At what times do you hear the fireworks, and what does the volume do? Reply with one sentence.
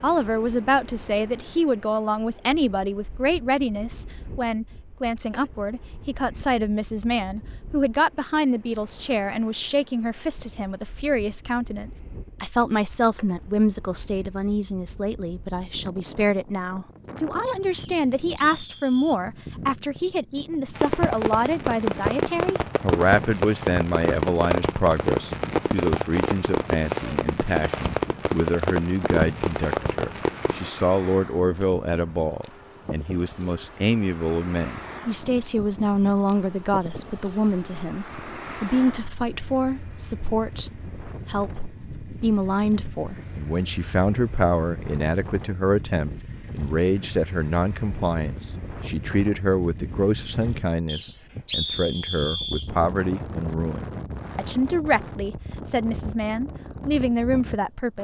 The fireworks can be heard from 20.8 to 30.7 s, at a steady volume.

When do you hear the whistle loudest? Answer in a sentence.
The volume of the whistle peaks at 52 seconds.